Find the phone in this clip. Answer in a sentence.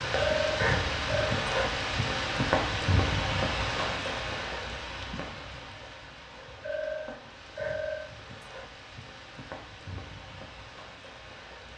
You can hear the phone from 0.1 to 1.4 s and from 6.6 to 8.4 s.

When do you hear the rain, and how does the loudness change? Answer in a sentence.
The rain can be heard from 0.0 to 11.7 s, getting quieter.